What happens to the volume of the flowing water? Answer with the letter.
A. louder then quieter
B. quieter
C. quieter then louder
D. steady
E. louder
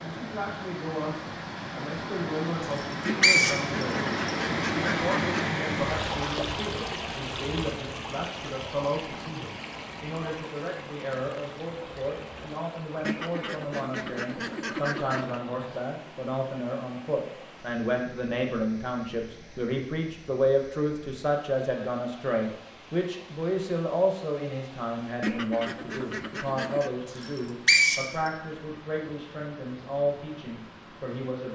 B.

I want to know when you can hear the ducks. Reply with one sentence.
The ducks can be heard from 3.0 to 5.5 s, from 13.0 to 15.4 s and from 25.2 to 26.9 s.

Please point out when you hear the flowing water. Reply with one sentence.
The flowing water can be heard from 0.0 to 31.4 s.